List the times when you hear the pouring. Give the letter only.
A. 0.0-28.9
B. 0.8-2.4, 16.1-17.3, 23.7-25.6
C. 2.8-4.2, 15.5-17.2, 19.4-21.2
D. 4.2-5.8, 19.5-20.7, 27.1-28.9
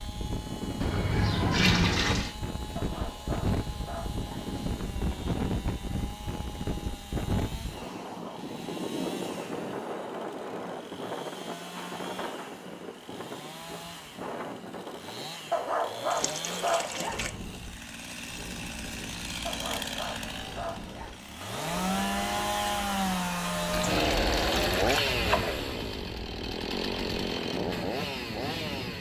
B.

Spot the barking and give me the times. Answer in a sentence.
The barking can be heard from 2.8 to 4.2 s, from 15.5 to 17.2 s and from 19.4 to 21.2 s.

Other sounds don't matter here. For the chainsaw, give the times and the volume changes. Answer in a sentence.
You can hear the chainsaw from 0.0 to 28.9 s, getting louder.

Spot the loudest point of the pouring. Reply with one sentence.
The loudest moment of the pouring is at 2 seconds.